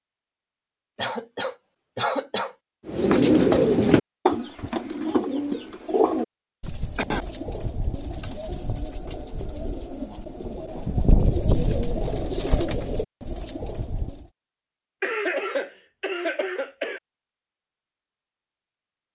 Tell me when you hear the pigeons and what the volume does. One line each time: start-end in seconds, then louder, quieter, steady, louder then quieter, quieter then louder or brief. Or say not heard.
2.9-14.3 quieter then louder.